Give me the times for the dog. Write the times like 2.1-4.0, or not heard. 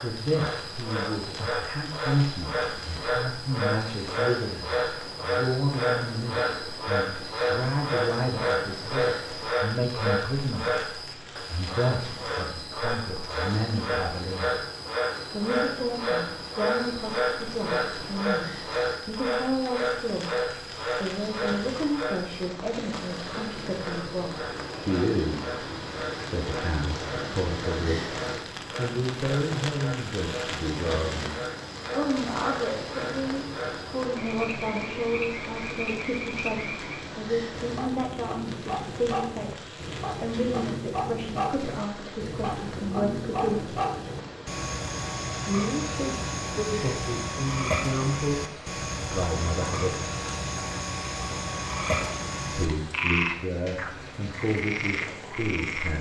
not heard.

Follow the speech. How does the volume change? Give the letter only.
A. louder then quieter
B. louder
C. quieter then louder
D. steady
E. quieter
D.